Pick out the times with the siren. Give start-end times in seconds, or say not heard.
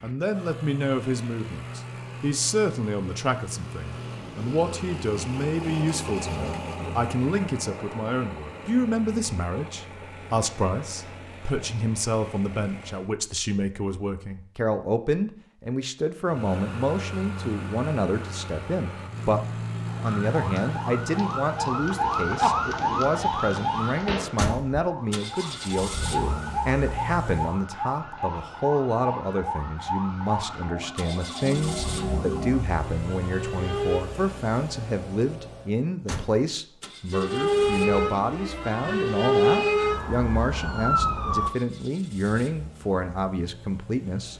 20.0-34.0, 37.1-41.5.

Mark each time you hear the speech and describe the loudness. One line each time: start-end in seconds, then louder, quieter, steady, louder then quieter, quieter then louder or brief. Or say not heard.
0.0-44.3 steady.